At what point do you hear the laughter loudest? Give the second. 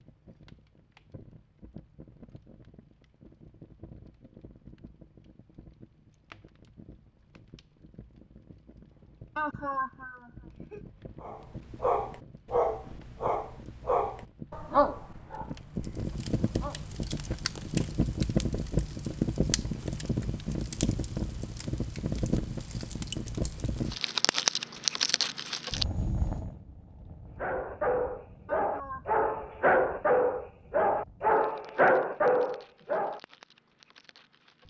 10 s.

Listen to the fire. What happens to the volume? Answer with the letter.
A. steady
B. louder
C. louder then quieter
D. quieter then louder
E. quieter
C.